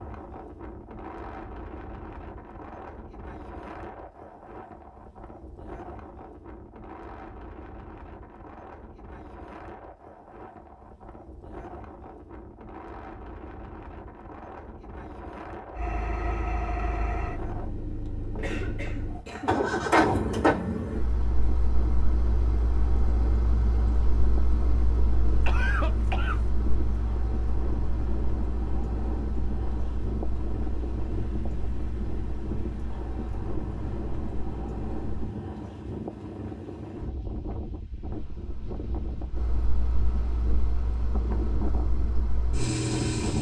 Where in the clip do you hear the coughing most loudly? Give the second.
26 s.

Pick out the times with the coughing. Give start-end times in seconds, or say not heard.
18.4-19.6, 25.4-26.4.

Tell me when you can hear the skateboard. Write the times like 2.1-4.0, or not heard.
not heard.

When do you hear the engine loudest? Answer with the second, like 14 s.
20 s.